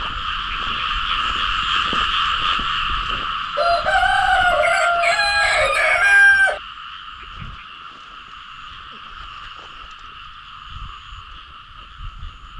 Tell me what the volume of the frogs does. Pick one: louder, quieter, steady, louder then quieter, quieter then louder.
quieter.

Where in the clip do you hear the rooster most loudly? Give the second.
6 s.